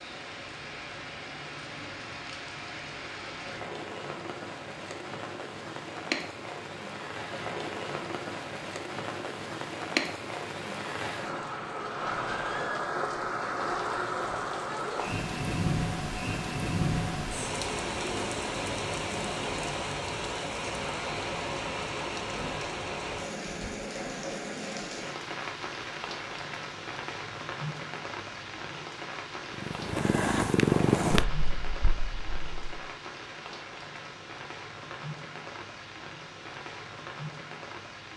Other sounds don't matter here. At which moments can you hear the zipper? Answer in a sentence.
The zipper can't be heard in this clip.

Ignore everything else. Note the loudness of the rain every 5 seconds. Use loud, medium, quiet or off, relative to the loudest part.
medium, loud, loud, loud, loud, medium, medium, medium.